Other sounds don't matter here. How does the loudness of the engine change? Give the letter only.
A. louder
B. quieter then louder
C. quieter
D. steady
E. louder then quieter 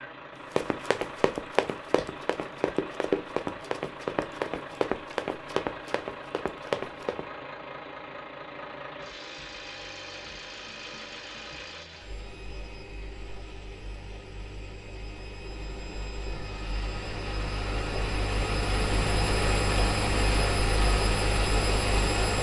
A.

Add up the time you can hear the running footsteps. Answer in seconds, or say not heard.
7 s.